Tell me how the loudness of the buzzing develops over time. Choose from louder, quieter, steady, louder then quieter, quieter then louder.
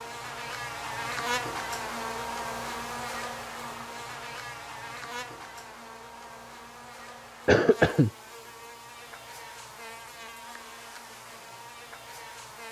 quieter.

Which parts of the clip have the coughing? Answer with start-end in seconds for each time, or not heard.
7.5-8.1.